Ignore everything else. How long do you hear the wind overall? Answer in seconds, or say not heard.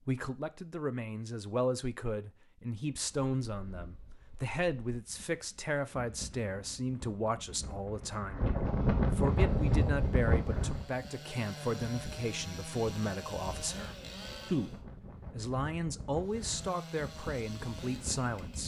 16 s.